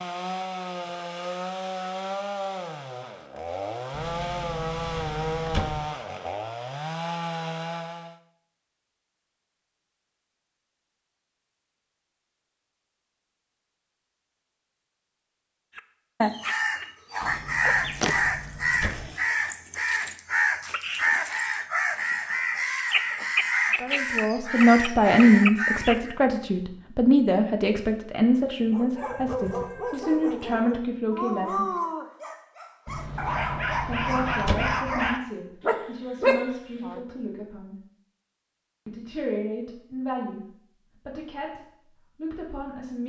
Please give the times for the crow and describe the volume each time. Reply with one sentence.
The crow can be heard from 15.8 to 26.1 s, at a steady volume.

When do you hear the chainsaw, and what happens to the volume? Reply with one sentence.
The chainsaw can be heard from 0.0 to 8.2 s, at a steady volume.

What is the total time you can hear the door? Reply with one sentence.
The door can be heard for 6 seconds in total.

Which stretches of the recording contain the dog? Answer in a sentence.
You can hear the dog from 28.6 to 37.0 s.